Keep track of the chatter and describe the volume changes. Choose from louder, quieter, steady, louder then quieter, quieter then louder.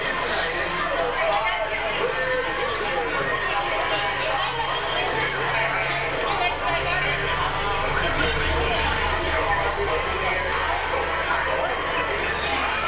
steady.